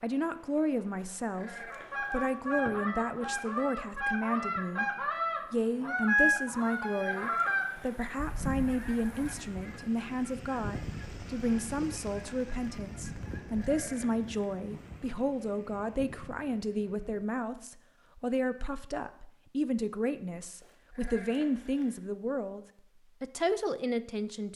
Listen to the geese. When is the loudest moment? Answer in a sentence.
The volume of the geese peaks at 6 seconds.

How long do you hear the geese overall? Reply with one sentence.
The geese can be heard for 12 seconds in total.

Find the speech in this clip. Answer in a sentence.
The speech can be heard from 0.0 to 4.8 s and from 5.5 to 24.5 s.